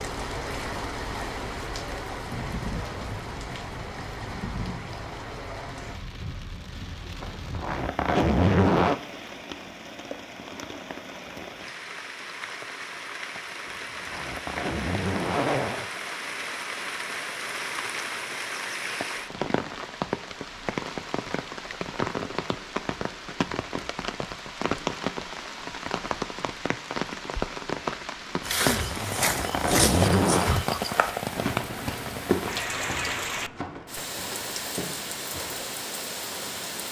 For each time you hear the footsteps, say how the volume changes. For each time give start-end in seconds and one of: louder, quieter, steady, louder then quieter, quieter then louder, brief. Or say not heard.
28.4-35.6 quieter.